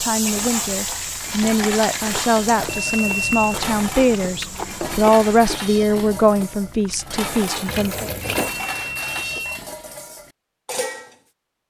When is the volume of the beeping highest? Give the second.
3 s.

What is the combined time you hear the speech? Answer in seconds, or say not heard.
8 s.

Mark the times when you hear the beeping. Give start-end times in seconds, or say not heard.
2.6-3.6, 8.4-9.6.